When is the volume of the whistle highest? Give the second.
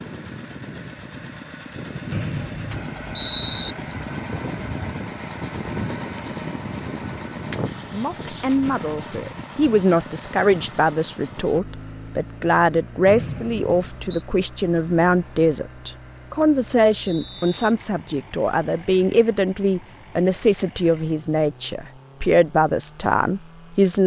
3 s.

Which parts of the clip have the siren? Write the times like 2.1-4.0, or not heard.
not heard.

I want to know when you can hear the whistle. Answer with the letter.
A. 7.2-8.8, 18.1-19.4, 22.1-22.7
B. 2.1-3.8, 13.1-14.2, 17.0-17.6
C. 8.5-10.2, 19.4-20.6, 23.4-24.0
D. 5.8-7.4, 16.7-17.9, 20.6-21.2
B.